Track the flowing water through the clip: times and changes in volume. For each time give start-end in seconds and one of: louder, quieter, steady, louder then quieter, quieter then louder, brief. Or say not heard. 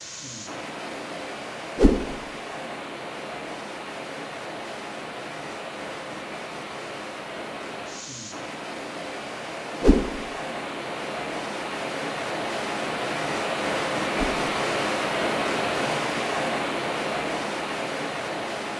0.0-18.7 louder.